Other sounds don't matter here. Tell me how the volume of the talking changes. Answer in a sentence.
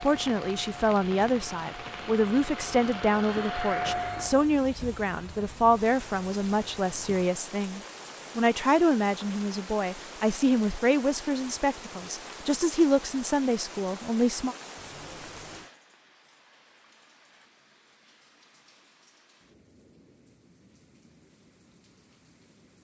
The loudness of the talking stays about the same.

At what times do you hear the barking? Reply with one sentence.
You can't hear the barking here.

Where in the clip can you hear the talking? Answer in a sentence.
The talking can be heard from 0.0 to 14.6 s.